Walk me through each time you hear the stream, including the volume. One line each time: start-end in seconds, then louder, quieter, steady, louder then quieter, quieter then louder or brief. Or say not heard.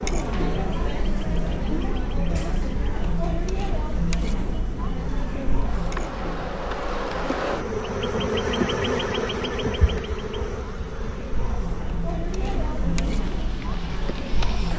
not heard.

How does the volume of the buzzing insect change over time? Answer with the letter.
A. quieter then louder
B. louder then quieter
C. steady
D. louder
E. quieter
B.